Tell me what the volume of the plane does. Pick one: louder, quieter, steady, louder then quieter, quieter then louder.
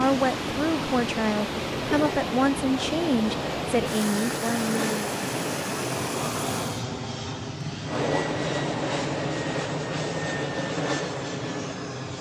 louder.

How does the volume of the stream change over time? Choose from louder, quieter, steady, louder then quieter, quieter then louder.
steady.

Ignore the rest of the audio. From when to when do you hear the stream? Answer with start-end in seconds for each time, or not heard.
0.0-6.8.